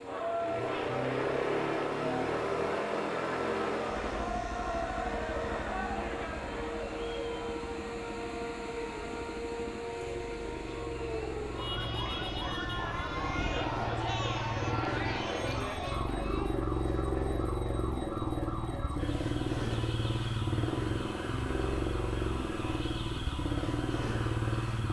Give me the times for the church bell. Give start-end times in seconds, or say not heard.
not heard.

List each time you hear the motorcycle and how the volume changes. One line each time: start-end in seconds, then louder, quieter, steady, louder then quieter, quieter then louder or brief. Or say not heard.
0.0-24.8 quieter then louder.